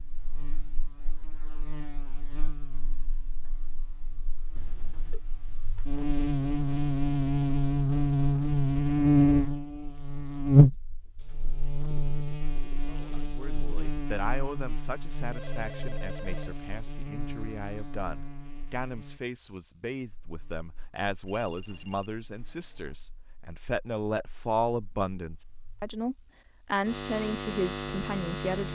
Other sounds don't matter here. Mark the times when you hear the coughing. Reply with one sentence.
You can't hear the coughing here.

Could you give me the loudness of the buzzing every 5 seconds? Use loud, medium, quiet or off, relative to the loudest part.
quiet, loud, loud, quiet, quiet, medium.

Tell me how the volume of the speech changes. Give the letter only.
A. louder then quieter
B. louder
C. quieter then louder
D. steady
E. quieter
B.